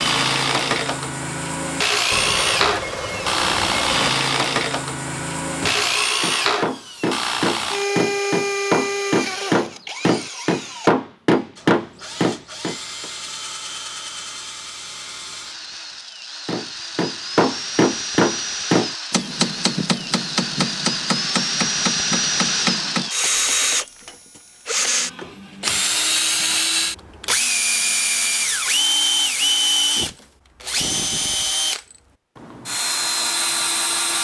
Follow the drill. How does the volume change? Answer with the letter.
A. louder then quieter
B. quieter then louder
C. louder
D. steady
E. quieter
B.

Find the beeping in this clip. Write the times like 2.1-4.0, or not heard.
2.1-4.1, 25.9-26.7.